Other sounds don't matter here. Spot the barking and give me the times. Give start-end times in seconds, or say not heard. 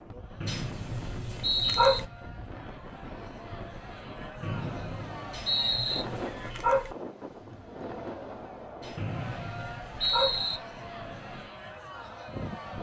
0.5-2.0, 5.3-7.0, 8.8-10.4.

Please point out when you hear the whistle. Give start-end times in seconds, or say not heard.
0.4-2.0, 4.4-6.0, 8.9-10.6.